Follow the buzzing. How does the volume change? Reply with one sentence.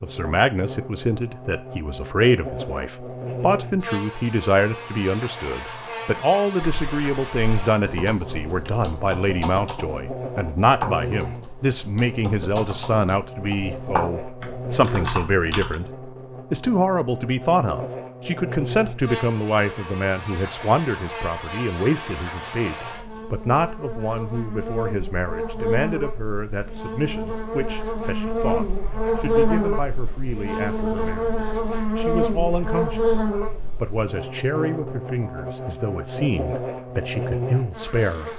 The loudness of the buzzing goes up.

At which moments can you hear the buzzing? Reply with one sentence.
The buzzing can be heard from 0.0 to 38.3 s.